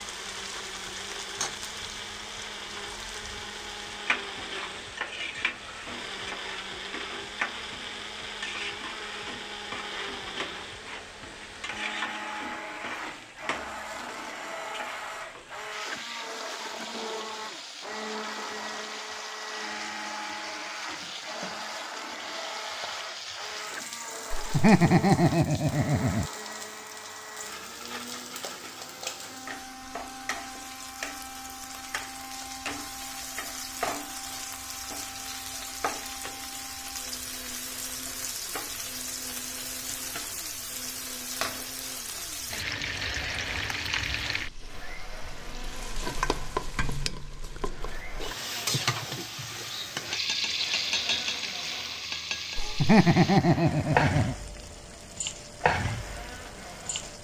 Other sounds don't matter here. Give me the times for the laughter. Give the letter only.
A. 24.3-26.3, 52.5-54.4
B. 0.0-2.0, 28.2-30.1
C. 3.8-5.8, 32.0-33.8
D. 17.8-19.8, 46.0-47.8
A.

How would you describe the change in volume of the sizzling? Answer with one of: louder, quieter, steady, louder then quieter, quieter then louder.
louder.